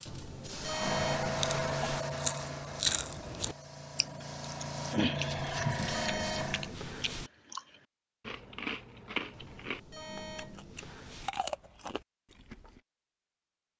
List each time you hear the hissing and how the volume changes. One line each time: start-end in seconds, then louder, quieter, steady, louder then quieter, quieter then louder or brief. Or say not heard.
0.0-6.8 quieter then louder.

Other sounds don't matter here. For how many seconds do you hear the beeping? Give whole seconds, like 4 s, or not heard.
6 s.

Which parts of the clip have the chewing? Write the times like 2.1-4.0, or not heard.
1.4-12.8.